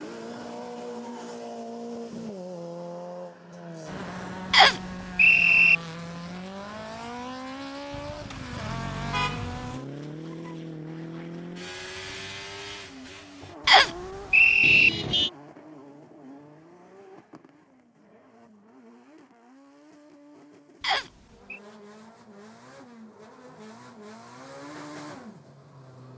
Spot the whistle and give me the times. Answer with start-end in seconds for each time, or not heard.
4.5-5.8, 13.7-14.9, 20.8-21.6.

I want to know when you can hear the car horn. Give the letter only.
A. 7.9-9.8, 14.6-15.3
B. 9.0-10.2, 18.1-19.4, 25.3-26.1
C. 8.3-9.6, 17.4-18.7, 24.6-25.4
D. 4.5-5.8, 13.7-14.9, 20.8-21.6
A.